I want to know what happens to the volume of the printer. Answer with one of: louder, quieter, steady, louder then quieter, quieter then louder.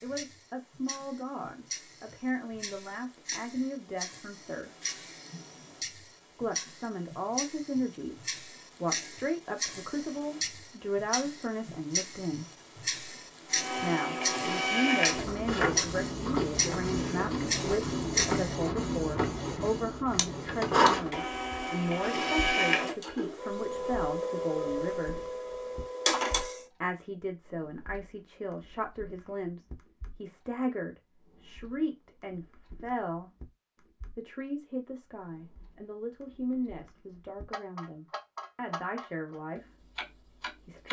steady.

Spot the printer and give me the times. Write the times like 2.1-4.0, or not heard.
13.5-26.6.